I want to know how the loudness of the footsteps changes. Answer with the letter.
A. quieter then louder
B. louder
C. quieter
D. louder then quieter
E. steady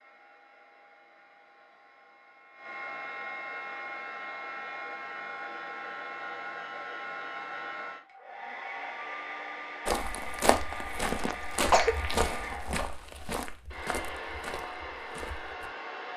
C.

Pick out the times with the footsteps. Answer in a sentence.
The footsteps can be heard from 9.8 to 15.7 s.